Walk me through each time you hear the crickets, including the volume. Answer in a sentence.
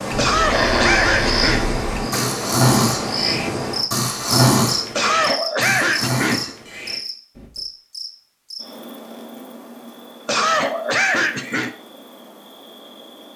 You can hear the crickets from 0.0 to 13.3 s, getting quieter.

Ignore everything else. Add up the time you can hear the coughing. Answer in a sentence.
The coughing can be heard for 5 seconds in total.